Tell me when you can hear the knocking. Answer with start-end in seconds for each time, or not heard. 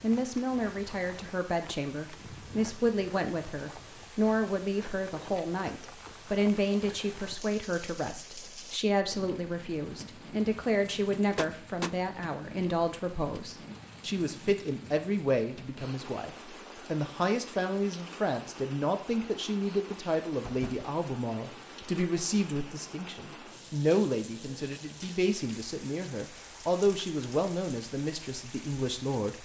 11.3-11.9, 20.4-20.9.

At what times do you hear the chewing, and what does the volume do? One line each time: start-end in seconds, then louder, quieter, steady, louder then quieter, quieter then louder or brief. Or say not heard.
not heard.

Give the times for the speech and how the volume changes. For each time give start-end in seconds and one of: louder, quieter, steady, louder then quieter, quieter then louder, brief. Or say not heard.
0.0-29.3 steady.